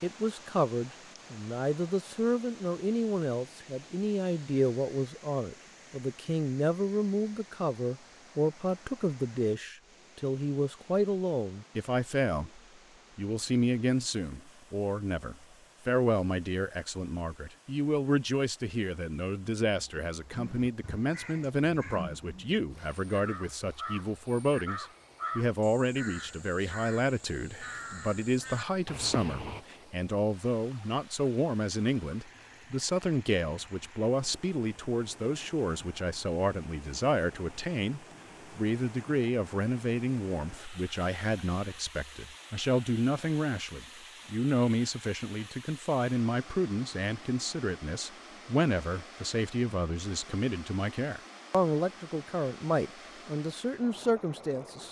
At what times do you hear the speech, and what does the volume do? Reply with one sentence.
You can hear the speech from 0.0 to 54.8 s, at a steady volume.